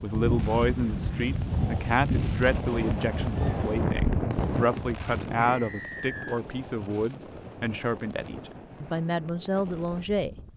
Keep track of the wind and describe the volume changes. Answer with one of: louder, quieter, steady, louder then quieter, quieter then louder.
quieter.